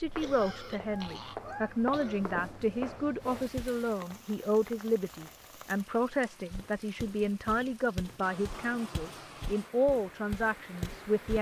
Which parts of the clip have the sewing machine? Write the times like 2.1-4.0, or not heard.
not heard.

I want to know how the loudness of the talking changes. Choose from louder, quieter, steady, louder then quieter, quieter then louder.
steady.